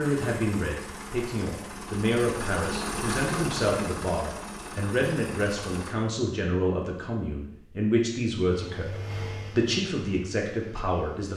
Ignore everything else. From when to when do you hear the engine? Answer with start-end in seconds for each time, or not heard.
0.0-6.0, 8.4-11.3.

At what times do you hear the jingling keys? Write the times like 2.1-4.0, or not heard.
not heard.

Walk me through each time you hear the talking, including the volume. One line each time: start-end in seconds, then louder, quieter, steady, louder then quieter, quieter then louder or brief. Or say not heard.
0.0-11.3 steady.